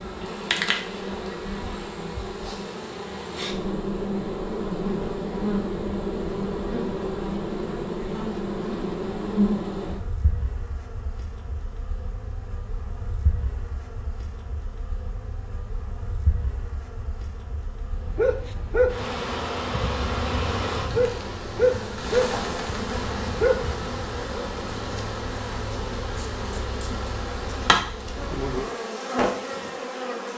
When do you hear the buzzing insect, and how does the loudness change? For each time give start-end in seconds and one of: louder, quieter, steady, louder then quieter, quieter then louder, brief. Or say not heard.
0.0-30.3 quieter then louder.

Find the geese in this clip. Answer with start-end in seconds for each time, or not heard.
not heard.